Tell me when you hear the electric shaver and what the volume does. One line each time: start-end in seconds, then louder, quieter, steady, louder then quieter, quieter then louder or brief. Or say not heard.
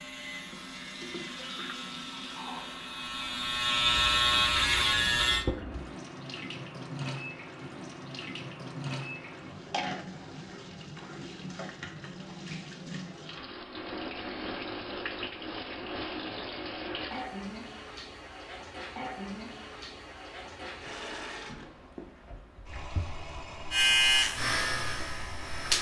0.0-5.5 louder
23.7-25.7 brief.